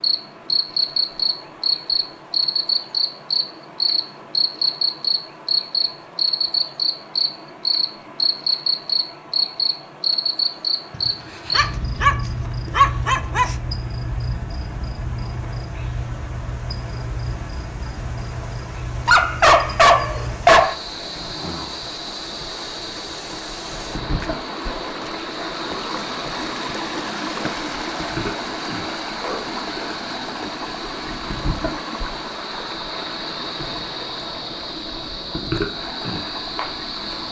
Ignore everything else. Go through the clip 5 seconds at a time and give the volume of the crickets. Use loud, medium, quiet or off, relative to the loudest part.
loud, loud, medium, quiet, quiet, quiet, quiet, medium.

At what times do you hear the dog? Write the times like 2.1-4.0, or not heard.
10.9-13.6, 19.1-20.8.